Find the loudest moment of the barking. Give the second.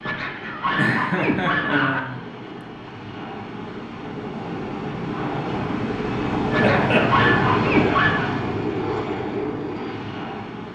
8 s.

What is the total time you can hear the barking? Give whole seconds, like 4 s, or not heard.
4 s.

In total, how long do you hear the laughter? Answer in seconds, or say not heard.
2 s.